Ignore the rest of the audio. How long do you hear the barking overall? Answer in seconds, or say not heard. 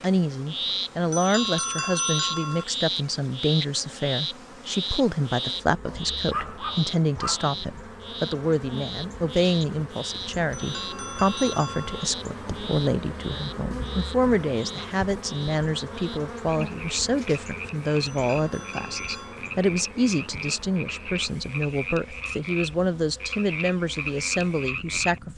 2 s.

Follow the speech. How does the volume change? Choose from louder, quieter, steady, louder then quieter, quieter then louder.
steady.